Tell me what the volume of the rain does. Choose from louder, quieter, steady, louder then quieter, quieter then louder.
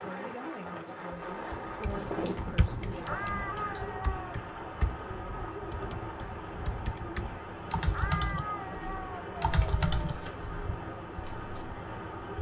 steady.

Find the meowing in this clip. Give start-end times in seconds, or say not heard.
3.0-4.4, 7.9-10.0.